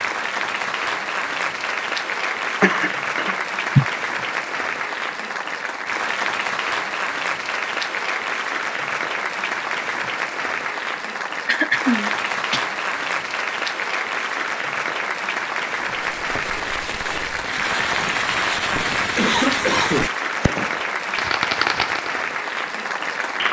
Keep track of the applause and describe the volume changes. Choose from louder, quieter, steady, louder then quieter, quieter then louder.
steady.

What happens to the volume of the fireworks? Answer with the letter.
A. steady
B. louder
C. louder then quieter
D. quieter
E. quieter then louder
B.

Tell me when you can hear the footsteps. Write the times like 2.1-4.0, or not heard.
not heard.